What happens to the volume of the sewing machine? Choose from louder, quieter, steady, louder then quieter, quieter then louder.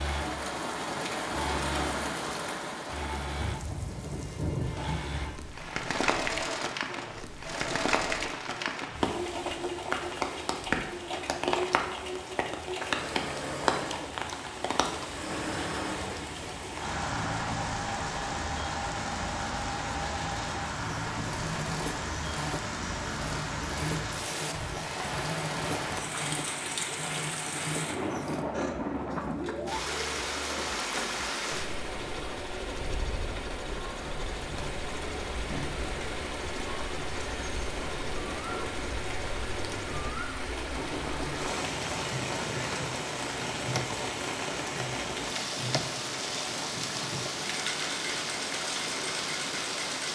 steady.